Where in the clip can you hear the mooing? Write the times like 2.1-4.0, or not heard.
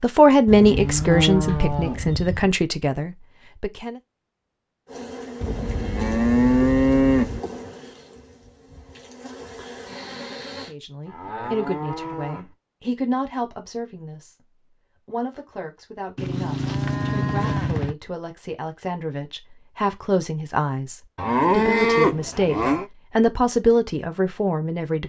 0.5-2.5, 5.4-7.4, 11.1-12.5, 16.1-17.9, 21.1-22.9.